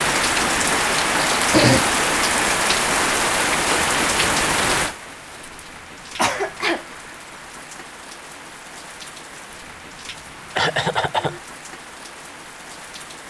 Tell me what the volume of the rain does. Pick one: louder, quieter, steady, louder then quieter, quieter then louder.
quieter.